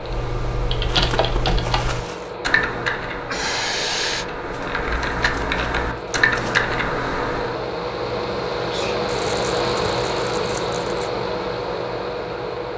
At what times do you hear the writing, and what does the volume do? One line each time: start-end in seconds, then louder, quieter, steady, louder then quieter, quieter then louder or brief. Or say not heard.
not heard.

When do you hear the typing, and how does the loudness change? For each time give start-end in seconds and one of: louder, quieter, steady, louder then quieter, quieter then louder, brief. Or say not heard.
0.0-7.6 quieter then louder.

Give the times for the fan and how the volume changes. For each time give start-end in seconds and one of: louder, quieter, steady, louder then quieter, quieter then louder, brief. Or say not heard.
0.0-12.7 louder.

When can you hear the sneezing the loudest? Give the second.
4 s.